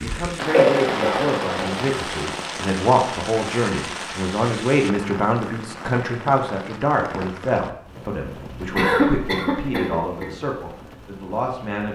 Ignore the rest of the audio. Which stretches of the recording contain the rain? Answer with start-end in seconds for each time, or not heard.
0.0-11.9.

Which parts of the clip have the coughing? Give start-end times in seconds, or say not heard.
0.5-1.7, 8.8-10.2.